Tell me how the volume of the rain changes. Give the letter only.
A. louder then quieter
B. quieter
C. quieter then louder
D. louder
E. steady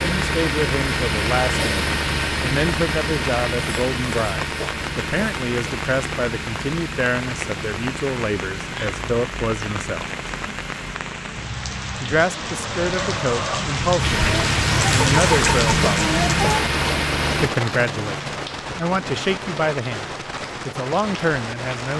A.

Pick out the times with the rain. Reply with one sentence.
You can hear the rain from 0.0 to 21.9 s.